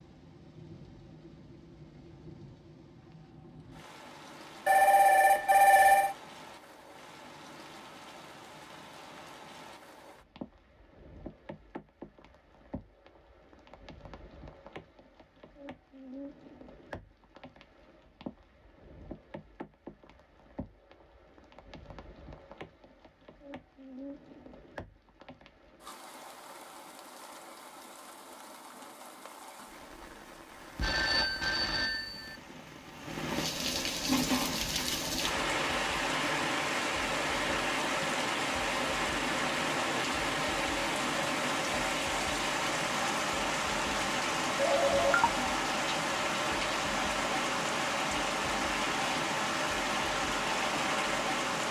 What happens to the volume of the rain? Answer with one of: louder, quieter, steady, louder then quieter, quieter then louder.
louder.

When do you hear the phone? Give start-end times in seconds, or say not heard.
4.7-6.2, 30.8-32.4, 44.5-45.5.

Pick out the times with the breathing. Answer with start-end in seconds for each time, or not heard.
not heard.